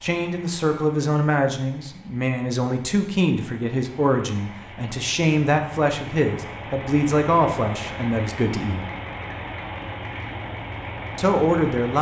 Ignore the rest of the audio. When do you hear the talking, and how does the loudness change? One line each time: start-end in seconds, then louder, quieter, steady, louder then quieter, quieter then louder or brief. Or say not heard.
0.0-8.8 steady
11.2-11.9 brief.